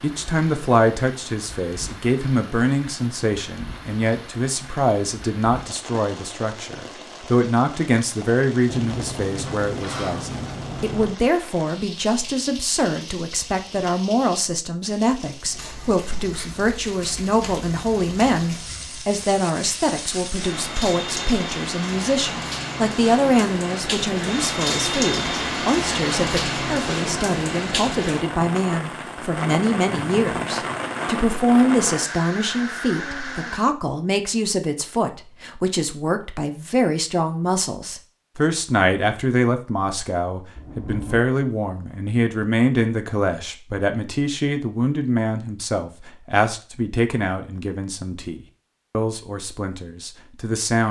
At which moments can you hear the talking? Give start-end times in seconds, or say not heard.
0.0-50.8.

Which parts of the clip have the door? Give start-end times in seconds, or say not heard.
8.7-11.2, 40.5-41.2.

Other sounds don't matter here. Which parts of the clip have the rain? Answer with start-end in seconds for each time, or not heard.
0.0-33.6.